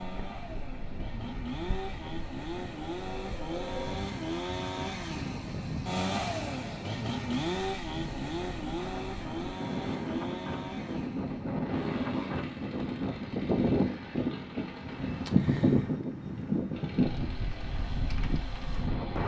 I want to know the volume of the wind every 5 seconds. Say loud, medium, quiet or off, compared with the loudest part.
quiet, medium, loud, loud.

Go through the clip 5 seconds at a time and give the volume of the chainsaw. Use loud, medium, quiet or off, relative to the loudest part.
loud, loud, medium, quiet.